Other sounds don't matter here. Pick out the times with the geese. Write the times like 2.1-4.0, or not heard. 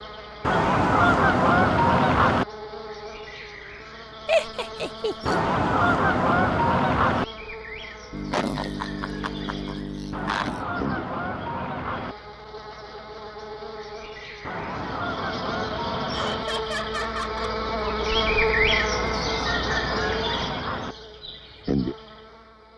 0.4-2.5, 5.2-7.2, 10.1-12.2, 14.4-16.4, 18.9-20.9.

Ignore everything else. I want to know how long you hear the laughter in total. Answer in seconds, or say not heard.
5 s.